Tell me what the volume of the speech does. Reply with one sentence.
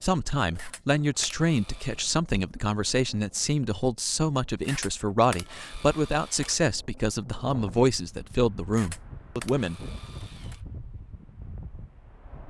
The volume of the speech stays about the same.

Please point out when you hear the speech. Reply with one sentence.
The speech can be heard from 0.0 to 9.8 s.